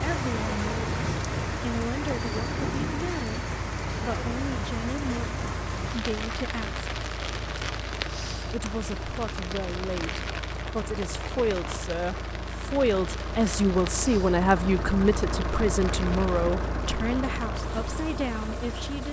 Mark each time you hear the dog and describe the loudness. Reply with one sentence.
You can't hear the dog here.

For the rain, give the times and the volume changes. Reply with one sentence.
You can hear the rain from 0.0 to 19.0 s, getting quieter.